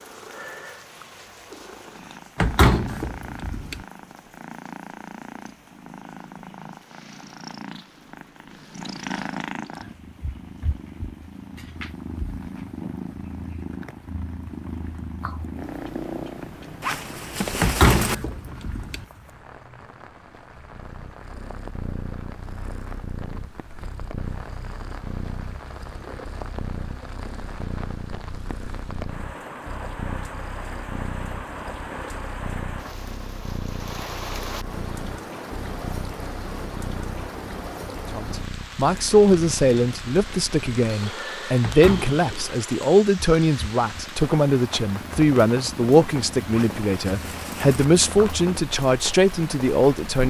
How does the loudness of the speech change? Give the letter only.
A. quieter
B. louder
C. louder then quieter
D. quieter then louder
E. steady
E.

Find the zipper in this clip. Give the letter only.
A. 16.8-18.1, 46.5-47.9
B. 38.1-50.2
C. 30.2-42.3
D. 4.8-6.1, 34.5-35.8
A.